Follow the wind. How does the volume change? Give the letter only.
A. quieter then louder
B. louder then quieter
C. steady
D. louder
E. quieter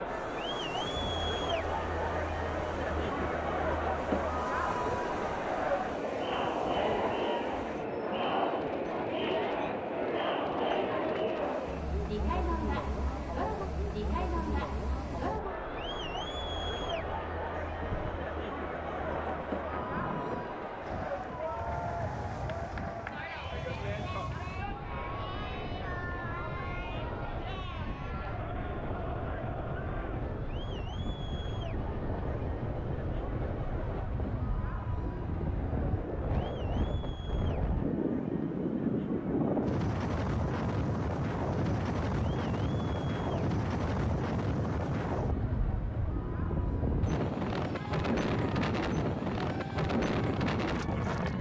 D.